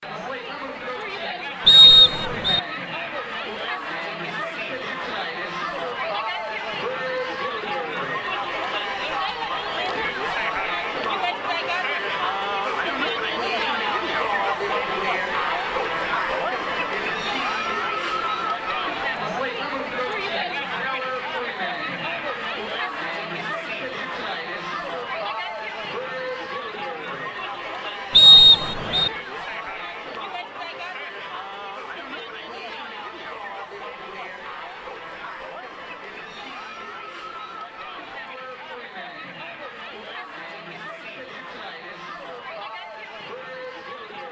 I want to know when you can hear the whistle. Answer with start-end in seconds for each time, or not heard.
1.6-2.6, 28.1-29.1.